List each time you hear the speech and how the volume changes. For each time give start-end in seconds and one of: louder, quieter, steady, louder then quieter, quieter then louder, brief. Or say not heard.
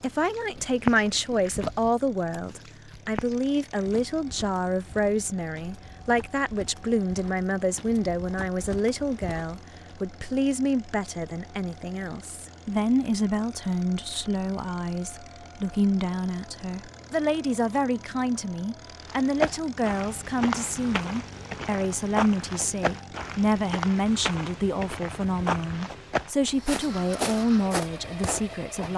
0.0-28.9 steady.